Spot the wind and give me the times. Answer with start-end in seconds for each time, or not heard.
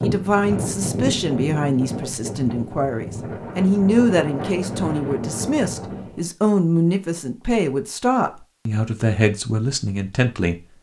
0.0-6.2.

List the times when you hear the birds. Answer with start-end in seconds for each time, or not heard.
not heard.